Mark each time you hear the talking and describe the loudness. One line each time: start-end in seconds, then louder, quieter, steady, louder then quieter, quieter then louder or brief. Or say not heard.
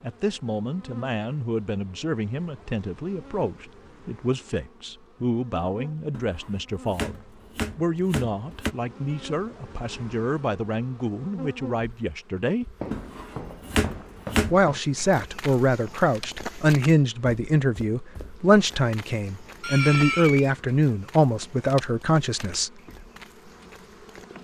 0.0-12.7 steady
14.5-22.7 steady.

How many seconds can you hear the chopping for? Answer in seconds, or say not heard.
4 s.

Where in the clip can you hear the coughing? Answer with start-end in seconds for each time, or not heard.
19.6-20.6.